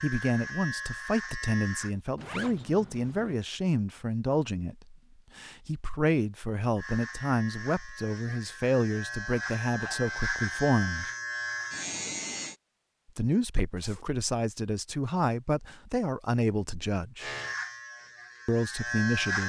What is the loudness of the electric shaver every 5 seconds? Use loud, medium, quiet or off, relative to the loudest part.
loud, medium, loud, loud.